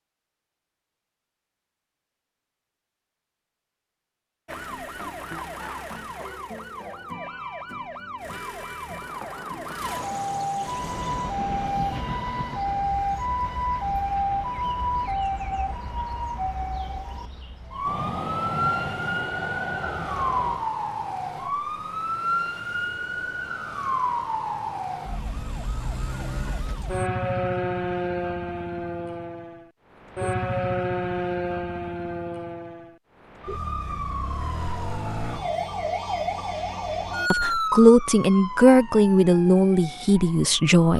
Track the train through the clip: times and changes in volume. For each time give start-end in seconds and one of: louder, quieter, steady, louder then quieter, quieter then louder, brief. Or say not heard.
10.7-20.7 quieter then louder.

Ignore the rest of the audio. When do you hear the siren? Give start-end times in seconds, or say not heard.
4.5-40.9.